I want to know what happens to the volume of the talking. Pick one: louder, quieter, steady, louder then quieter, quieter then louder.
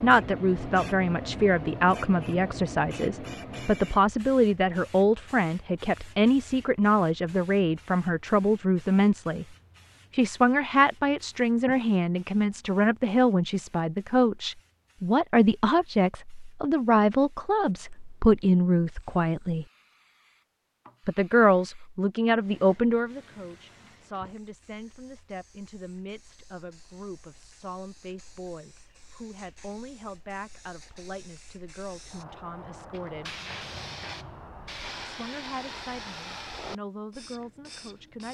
quieter.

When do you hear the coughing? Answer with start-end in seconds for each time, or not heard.
not heard.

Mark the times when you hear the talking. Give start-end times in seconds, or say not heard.
0.0-9.4, 10.1-19.6, 21.1-33.4, 35.0-38.3.